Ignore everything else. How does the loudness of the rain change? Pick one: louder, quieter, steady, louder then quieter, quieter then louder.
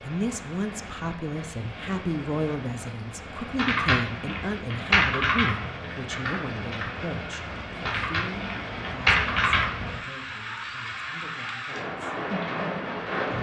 louder.